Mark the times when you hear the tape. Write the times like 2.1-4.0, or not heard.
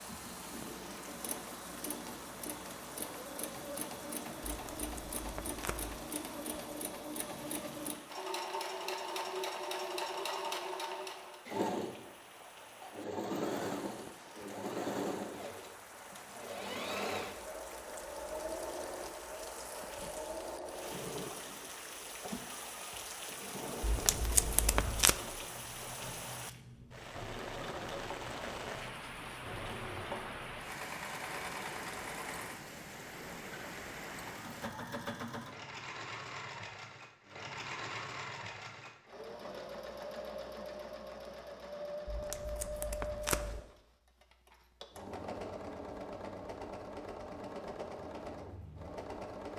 4.5-6.0, 23.8-25.1, 42.0-43.6.